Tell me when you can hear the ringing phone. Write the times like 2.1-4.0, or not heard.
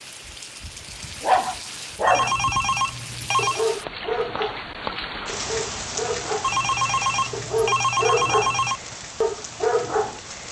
2.0-3.6, 6.4-8.8.